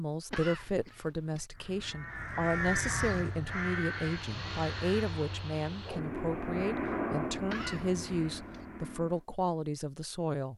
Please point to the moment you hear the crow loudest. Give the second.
3 s.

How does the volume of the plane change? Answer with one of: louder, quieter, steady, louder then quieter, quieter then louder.
louder then quieter.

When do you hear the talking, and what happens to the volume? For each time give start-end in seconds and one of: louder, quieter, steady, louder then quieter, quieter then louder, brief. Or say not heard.
0.0-10.5 steady.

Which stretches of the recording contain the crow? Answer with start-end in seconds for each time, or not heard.
1.5-5.0.